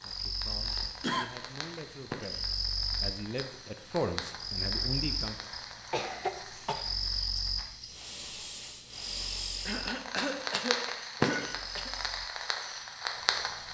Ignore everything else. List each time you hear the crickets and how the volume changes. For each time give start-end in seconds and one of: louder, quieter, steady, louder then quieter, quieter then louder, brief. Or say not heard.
0.0-13.6 quieter.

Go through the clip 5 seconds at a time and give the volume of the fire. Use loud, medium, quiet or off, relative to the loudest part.
medium, medium, loud.